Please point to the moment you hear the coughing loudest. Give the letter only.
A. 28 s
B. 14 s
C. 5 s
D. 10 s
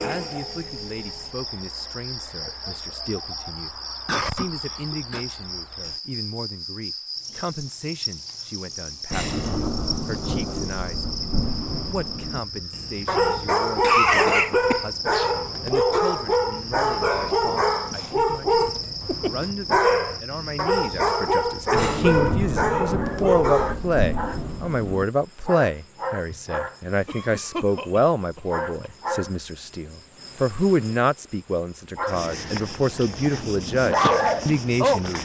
B.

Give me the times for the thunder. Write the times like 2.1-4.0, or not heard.
9.1-12.4, 21.8-25.1.